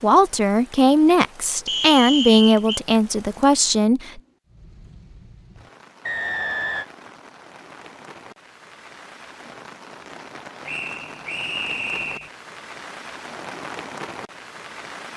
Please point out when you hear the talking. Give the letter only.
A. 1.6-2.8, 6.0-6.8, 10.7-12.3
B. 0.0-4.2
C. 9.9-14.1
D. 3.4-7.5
B.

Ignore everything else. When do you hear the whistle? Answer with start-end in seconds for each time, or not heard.
1.6-2.8, 6.0-6.8, 10.7-12.3.